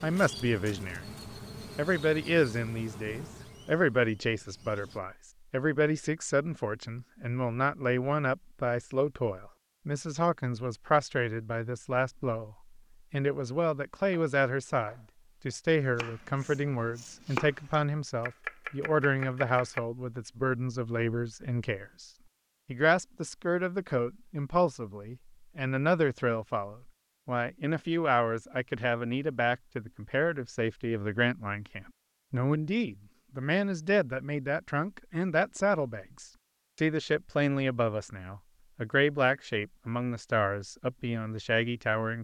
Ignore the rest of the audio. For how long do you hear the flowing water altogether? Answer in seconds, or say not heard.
not heard.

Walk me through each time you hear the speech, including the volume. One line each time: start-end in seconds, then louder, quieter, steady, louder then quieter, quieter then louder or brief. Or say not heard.
0.0-1.1 brief
1.8-42.2 steady.